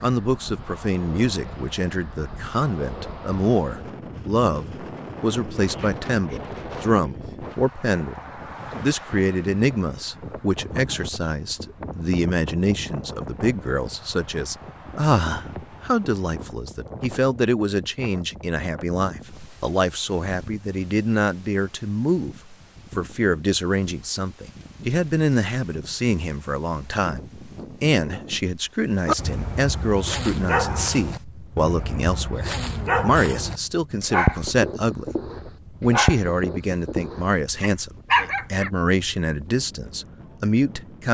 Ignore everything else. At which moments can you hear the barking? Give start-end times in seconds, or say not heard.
29.1-38.7.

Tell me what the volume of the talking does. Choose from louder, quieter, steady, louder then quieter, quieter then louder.
steady.